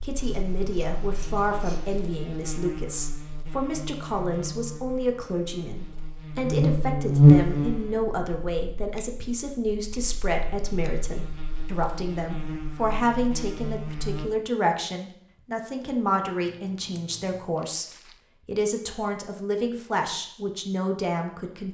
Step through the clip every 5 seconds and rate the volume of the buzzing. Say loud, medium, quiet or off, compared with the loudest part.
quiet, loud, quiet, off, off.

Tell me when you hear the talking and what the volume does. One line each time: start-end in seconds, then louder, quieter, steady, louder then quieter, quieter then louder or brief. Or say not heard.
0.0-21.6 steady.